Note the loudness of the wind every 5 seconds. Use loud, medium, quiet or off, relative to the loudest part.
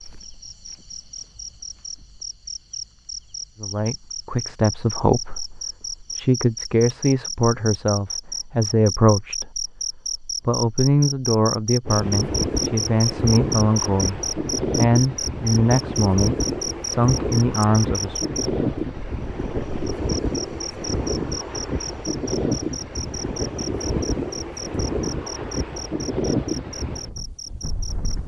off, off, loud, loud, loud, loud.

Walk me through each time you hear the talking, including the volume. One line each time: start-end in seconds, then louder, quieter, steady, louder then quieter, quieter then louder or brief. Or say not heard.
3.6-18.4 steady.